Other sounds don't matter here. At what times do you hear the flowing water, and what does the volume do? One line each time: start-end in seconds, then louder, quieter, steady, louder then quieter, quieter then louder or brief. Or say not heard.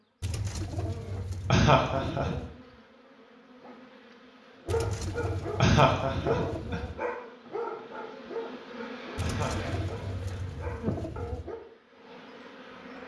not heard.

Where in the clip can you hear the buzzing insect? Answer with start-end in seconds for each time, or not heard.
0.0-13.0.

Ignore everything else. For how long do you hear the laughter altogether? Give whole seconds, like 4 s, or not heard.
3 s.